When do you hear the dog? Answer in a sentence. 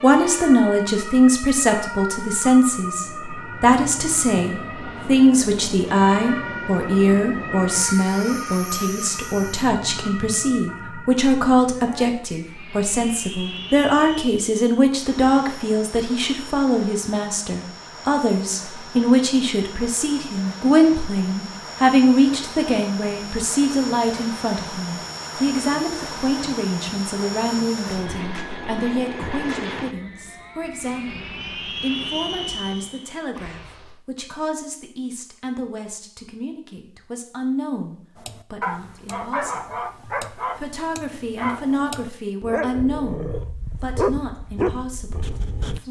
You can hear the dog from 38.1 to 45.8 s.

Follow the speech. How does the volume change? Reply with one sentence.
The volume of the speech goes down.